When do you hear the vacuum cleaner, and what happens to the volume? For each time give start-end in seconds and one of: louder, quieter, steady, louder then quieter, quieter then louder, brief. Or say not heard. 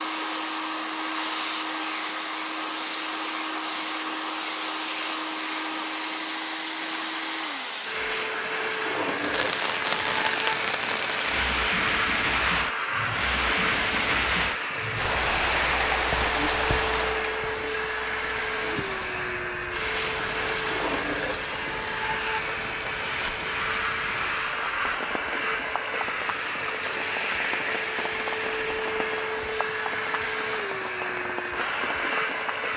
0.0-32.7 steady.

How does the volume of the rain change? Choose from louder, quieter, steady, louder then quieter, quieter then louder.
quieter.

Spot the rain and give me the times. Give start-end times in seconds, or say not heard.
9.2-32.7.